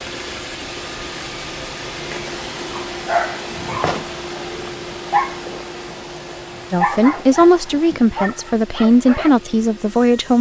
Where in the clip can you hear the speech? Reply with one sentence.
You can hear the speech from 6.7 to 10.3 s.